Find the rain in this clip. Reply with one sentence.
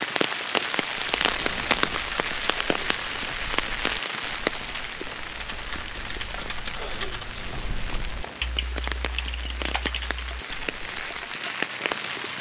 You can hear the rain from 0.0 to 12.3 s.